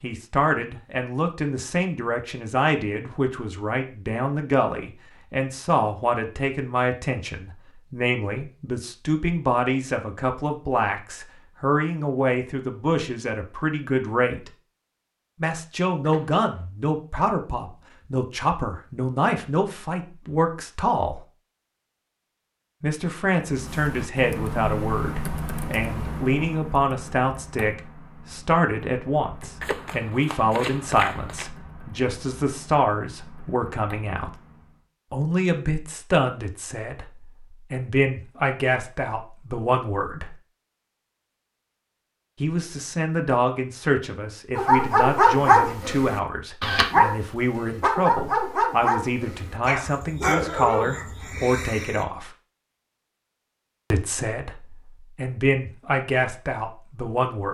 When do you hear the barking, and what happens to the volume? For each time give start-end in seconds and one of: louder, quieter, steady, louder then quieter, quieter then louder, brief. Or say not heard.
44.5-52.0 quieter.